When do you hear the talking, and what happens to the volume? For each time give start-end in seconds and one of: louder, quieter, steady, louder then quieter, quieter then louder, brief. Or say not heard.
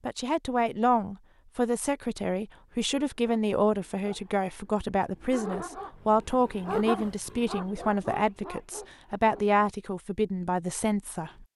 0.1-11.4 steady.